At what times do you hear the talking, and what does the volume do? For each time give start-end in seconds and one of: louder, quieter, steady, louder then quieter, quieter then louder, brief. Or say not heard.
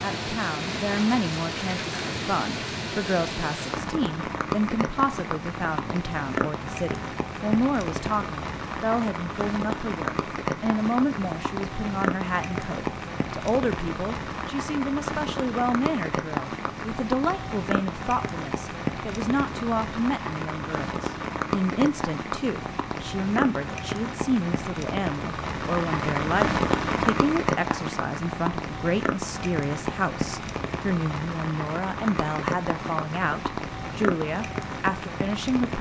0.0-35.7 steady.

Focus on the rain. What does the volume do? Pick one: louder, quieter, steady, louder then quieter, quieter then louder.
steady.